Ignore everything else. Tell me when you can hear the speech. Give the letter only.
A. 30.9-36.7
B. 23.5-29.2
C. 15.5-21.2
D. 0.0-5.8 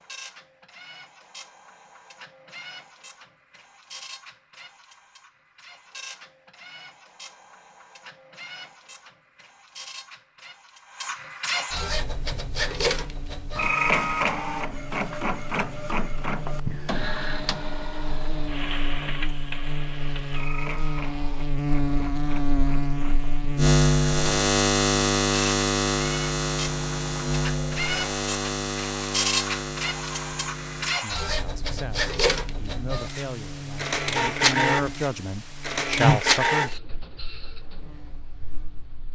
A.